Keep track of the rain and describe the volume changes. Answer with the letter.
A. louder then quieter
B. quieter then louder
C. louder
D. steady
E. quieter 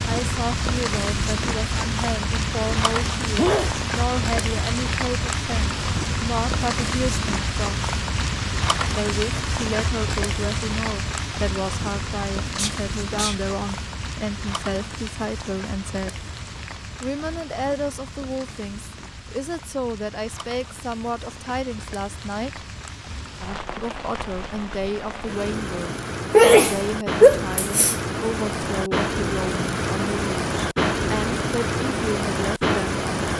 B.